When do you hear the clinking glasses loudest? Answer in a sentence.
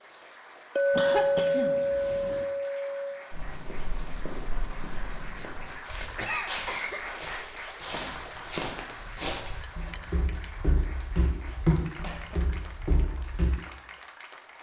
The loudest moment of the clinking glasses is at 1 second.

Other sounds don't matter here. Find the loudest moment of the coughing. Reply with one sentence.
The volume of the coughing peaks at 1 second.